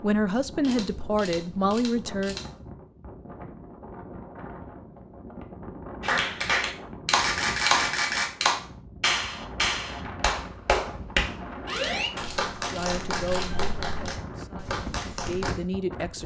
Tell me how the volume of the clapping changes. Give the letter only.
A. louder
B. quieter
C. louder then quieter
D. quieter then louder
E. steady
B.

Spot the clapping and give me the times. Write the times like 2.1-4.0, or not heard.
6.0-15.6.